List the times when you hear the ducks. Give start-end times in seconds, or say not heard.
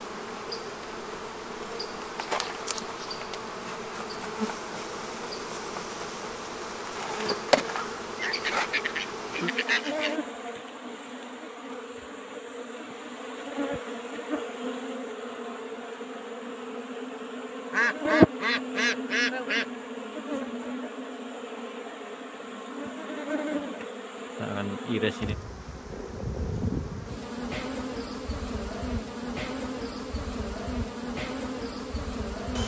8.2-10.2, 17.7-19.6.